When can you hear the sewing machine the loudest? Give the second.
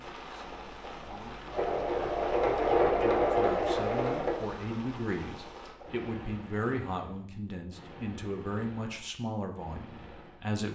3 s.